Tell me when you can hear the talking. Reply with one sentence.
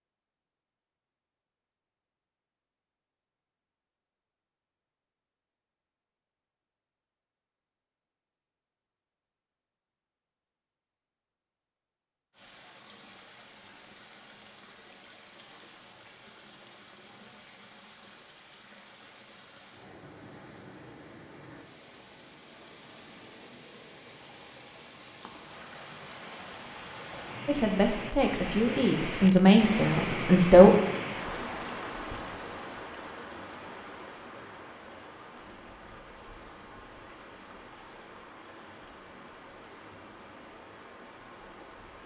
You can hear the talking from 27.4 to 30.7 s.